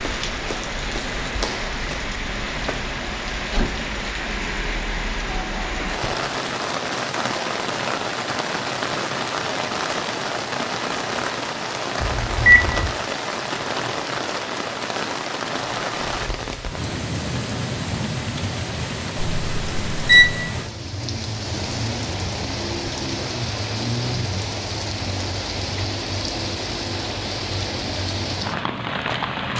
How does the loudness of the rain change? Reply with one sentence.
The volume of the rain stays about the same.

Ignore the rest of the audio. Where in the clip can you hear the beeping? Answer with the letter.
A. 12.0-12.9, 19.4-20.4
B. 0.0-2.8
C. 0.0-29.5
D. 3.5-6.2
A.